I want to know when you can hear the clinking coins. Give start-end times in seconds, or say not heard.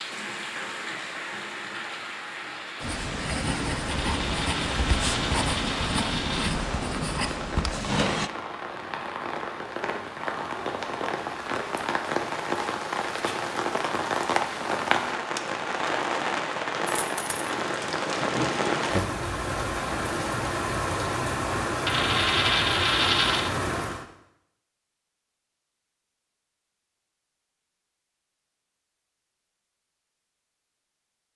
3.9-6.5, 16.9-17.4, 21.9-23.5.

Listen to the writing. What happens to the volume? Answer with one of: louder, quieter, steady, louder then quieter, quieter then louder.
steady.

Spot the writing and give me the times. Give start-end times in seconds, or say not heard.
2.8-8.3.